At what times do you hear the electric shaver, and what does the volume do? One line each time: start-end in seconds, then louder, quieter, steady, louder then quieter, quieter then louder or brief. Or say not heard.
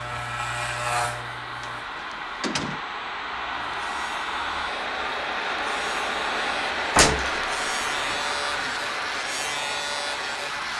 0.0-1.9 brief
3.5-10.7 louder.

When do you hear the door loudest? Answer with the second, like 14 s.
7 s.